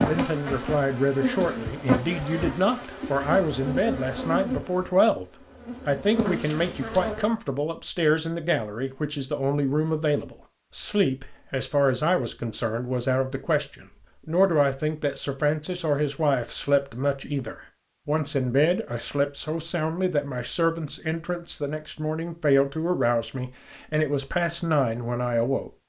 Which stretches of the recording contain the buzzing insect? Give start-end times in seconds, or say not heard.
0.0-7.3.